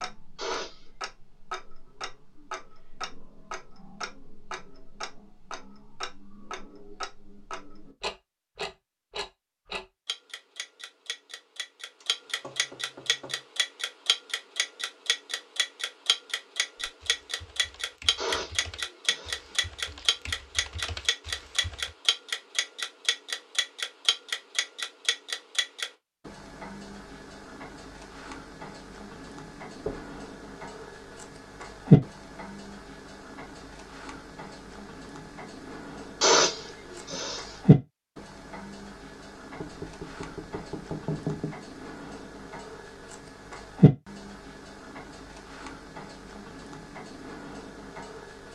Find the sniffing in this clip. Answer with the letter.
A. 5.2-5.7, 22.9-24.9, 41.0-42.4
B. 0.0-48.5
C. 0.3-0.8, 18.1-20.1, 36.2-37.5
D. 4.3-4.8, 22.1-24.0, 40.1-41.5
C.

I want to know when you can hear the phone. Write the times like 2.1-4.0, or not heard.
not heard.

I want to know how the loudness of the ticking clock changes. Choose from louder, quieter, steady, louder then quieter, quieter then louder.
louder then quieter.